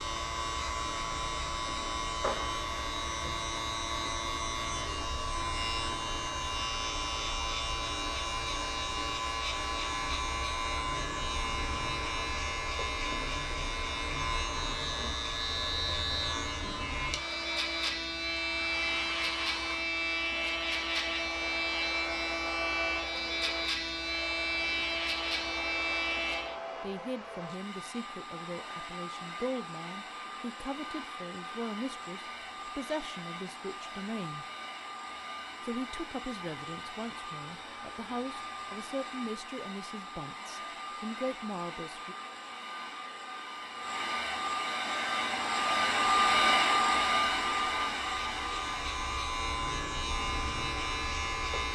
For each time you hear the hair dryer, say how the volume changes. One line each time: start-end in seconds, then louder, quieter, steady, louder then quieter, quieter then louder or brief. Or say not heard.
0.0-51.7 louder.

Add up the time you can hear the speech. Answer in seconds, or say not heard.
14 s.